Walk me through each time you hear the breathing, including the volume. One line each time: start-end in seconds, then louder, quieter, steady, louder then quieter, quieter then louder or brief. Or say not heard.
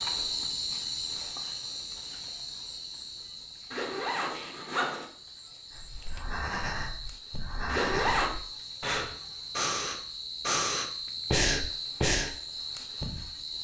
5.7-12.3 louder.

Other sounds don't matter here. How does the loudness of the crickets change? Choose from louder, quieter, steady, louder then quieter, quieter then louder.
quieter then louder.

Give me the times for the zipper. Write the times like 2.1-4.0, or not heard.
3.7-5.0, 7.7-8.3.